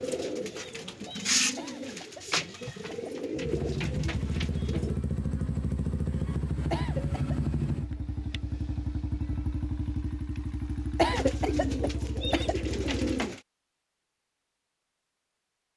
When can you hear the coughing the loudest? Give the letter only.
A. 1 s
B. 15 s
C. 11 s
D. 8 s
C.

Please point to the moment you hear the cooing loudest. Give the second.
1 s.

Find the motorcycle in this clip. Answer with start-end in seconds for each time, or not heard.
3.3-13.2.